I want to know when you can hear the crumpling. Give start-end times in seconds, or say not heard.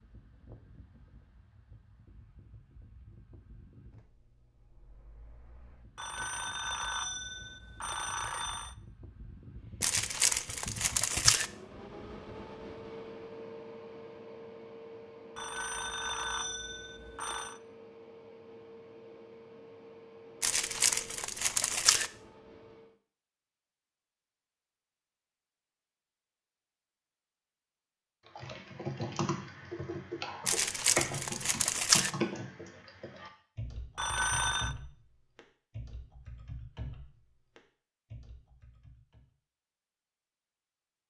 9.8-11.5, 20.4-22.1, 30.4-32.1.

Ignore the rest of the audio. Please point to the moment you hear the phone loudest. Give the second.
34 s.